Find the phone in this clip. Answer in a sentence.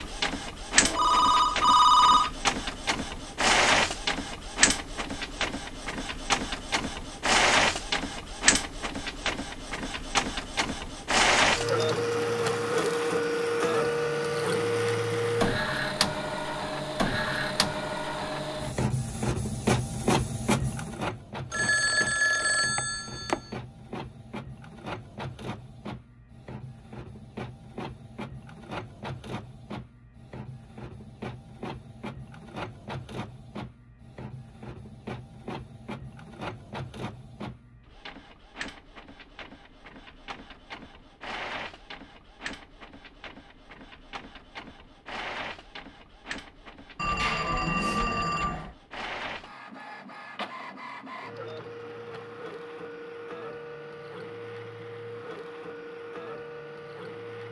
You can hear the phone from 0.8 to 2.3 s, from 21.5 to 23.5 s and from 47.0 to 48.8 s.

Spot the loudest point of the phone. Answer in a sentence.
The loudest moment of the phone is at 2 seconds.